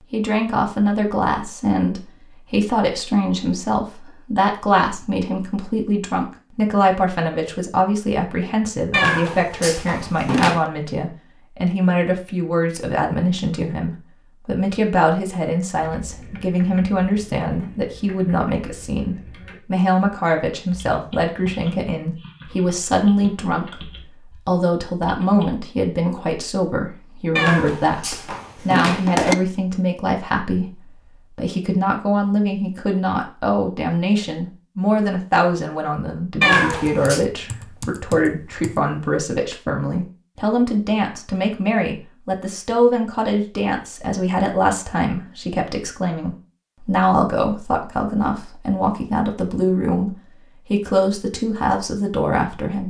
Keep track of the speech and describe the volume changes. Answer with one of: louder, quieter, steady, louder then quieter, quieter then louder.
steady.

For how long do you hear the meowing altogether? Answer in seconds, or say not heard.
5 s.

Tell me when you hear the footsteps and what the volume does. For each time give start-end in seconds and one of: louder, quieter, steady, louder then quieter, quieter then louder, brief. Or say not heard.
not heard.